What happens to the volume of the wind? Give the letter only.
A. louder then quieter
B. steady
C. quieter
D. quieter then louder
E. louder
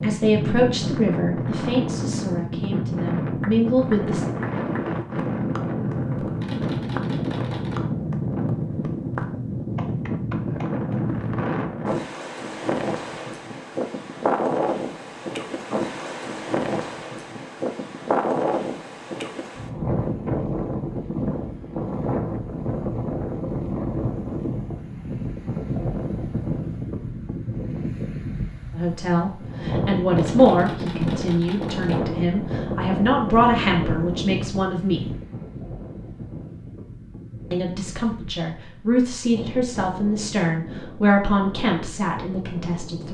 C.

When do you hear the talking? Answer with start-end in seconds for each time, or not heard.
0.0-4.2, 28.8-35.0, 37.5-43.0.